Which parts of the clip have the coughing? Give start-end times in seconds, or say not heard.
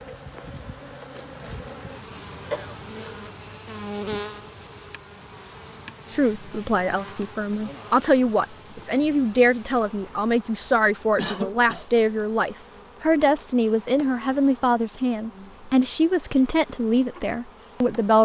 2.5-3.3, 10.8-11.8.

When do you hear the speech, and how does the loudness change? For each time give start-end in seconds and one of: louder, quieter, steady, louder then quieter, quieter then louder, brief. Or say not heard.
6.1-18.1 steady.